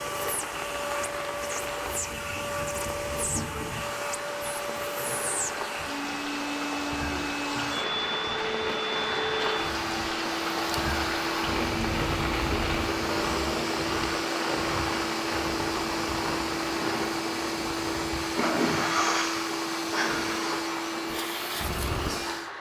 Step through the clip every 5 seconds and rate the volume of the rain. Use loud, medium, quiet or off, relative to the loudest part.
medium, loud, loud, loud, medium.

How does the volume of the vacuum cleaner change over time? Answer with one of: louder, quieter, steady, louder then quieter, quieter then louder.
steady.